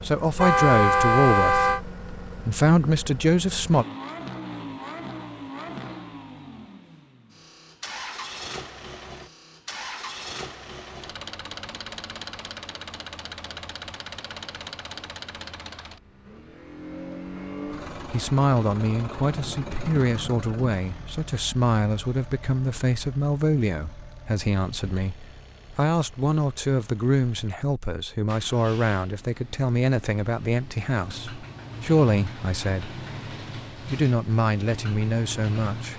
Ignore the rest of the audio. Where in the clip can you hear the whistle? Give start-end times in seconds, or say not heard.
not heard.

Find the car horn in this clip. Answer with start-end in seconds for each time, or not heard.
0.3-1.8, 19.2-20.6.